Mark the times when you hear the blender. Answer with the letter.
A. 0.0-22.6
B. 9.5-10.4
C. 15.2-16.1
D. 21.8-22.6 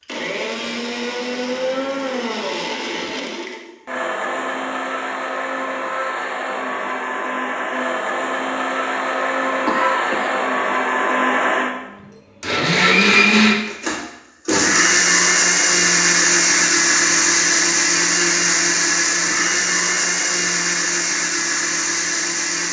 A.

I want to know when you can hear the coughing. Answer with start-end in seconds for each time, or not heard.
9.5-10.4.